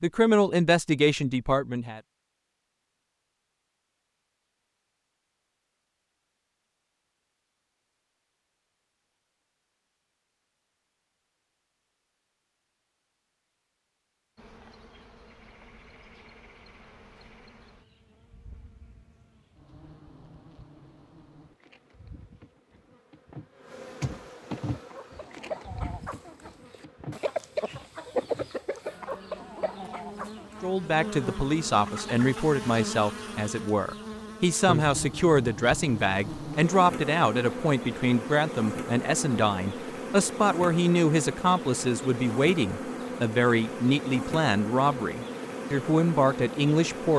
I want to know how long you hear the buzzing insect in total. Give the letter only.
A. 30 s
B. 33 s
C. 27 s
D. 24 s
B.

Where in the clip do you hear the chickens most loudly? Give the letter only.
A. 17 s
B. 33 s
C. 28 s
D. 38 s
C.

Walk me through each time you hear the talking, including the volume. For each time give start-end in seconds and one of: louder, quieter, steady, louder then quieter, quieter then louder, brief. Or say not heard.
0.0-2.0 brief
30.6-47.1 steady.